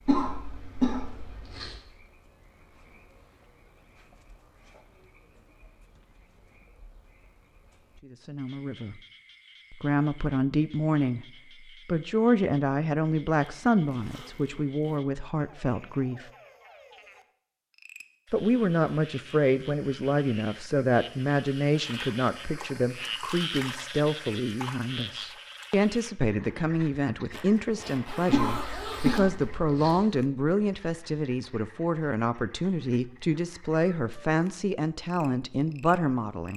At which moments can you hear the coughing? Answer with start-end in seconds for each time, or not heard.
0.1-1.8, 28.2-30.0.